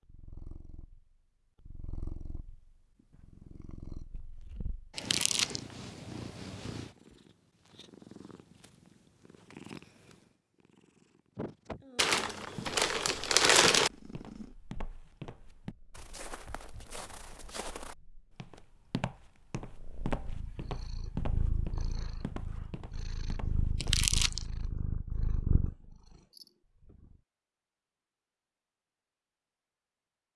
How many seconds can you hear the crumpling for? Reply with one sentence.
The crumpling can be heard for 3 seconds in total.